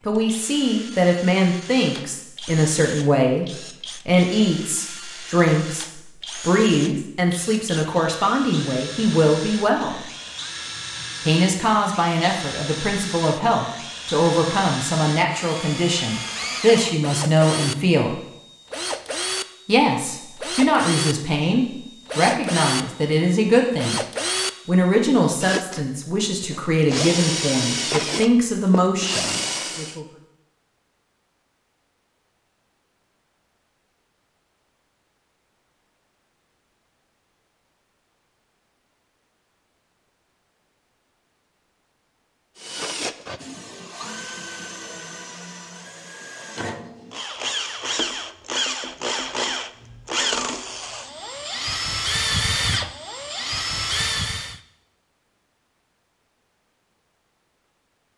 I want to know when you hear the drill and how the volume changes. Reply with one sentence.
You can hear the drill from 0.0 to 30.0 s, getting louder; and from 42.6 to 54.6 s, getting louder.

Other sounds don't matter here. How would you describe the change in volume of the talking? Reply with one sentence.
The loudness of the talking stays about the same.